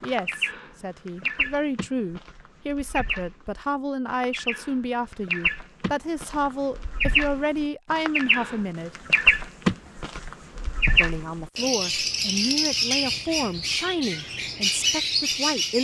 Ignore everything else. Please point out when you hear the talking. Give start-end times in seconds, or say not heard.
0.0-8.9, 10.9-15.7.